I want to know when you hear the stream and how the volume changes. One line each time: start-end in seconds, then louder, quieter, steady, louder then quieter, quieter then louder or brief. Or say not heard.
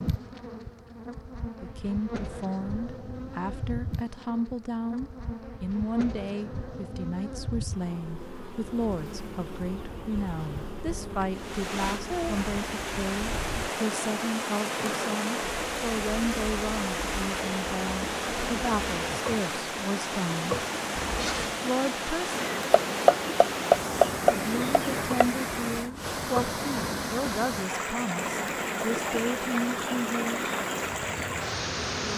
11.3-32.1 steady.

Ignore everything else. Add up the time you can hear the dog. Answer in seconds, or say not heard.
not heard.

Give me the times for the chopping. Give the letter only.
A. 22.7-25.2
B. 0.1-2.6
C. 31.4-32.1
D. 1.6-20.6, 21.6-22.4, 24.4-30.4
A.